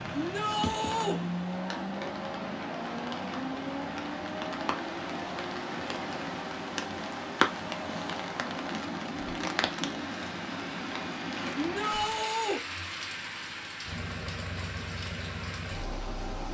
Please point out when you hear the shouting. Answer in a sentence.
You can hear the shouting from 0.1 to 1.2 s and from 11.6 to 12.6 s.